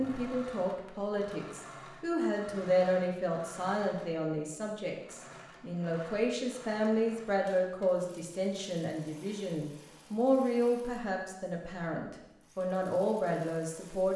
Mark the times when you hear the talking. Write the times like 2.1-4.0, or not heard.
0.0-14.1.